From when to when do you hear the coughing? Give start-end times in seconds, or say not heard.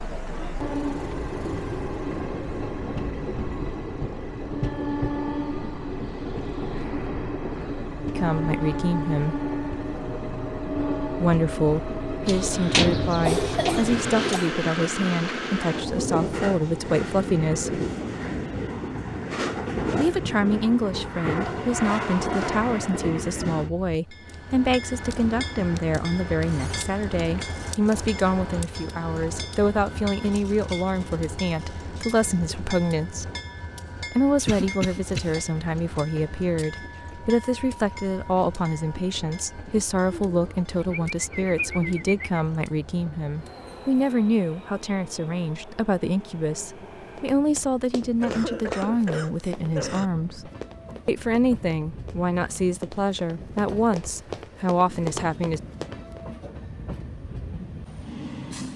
13.2-14.6, 34.5-35.4, 48.2-50.1.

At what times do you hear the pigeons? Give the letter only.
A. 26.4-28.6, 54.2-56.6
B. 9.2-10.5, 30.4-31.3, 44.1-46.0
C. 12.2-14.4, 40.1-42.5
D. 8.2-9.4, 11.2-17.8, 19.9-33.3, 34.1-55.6
C.